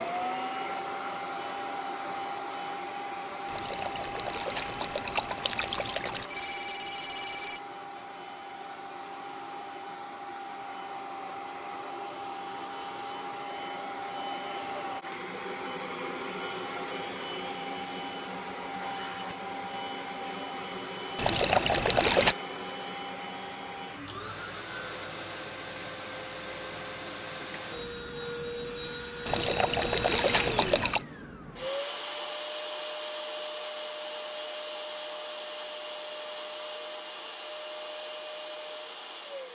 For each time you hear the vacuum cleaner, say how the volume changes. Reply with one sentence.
The vacuum cleaner can be heard from 0.0 to 39.5 s, at a steady volume.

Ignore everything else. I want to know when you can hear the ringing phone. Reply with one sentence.
The ringing phone can be heard from 6.2 to 7.6 s.